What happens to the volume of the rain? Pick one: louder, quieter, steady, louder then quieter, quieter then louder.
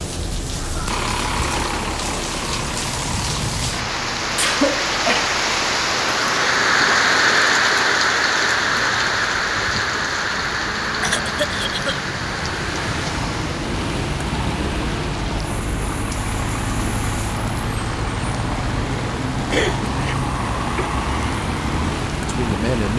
louder then quieter.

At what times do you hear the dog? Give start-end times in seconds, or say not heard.
not heard.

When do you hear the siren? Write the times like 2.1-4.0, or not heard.
not heard.